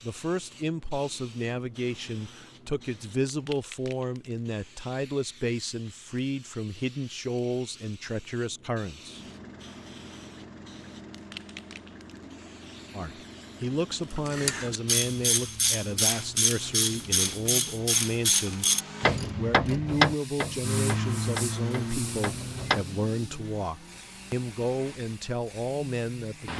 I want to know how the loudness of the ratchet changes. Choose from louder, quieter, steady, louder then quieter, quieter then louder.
quieter.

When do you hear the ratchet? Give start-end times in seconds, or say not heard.
14.2-22.9.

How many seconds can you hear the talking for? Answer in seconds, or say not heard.
22 s.